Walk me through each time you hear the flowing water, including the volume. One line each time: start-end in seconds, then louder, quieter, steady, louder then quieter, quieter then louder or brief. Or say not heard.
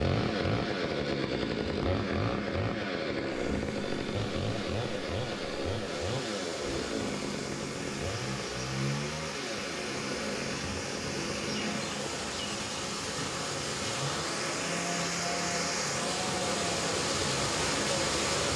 3.5-18.5 louder.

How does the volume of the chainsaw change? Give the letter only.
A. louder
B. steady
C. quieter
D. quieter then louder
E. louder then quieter
C.